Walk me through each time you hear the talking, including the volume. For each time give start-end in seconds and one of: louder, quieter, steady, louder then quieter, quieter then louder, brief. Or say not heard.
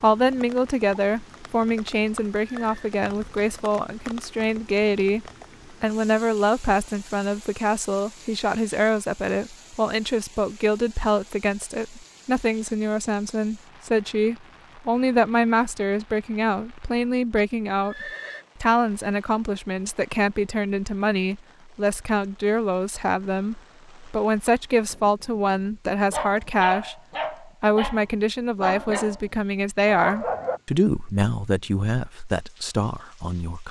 0.0-33.6 steady.